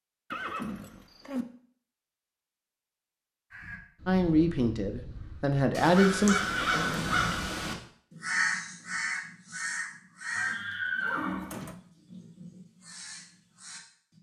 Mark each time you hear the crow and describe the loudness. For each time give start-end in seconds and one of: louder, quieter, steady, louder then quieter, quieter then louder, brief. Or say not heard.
3.5-14.1 louder then quieter.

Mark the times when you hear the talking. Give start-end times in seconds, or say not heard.
4.0-6.4.